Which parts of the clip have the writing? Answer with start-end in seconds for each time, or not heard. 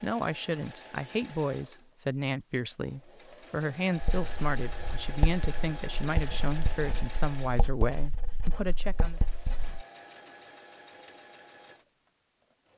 4.0-9.8.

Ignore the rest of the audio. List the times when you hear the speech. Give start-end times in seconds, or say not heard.
0.0-9.2.